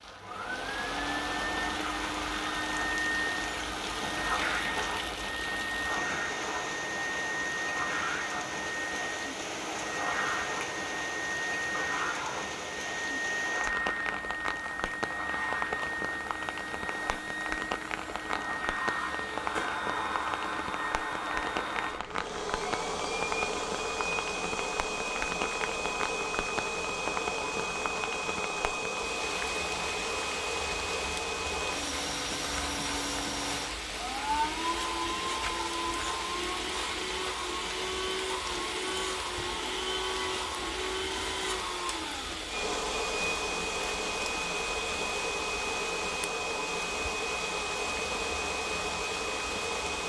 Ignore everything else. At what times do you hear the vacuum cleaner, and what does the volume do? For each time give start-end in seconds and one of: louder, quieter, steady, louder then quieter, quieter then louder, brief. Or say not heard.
0.0-50.0 steady.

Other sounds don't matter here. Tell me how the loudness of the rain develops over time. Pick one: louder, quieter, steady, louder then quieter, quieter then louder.
steady.